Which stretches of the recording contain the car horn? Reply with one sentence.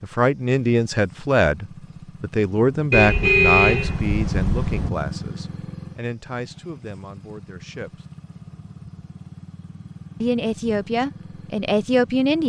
You can hear the car horn from 2.9 to 4.9 s.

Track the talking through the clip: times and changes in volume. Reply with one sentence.
You can hear the talking from 0.0 to 8.1 s, getting quieter; and briefly from 10.2 to 12.4 s.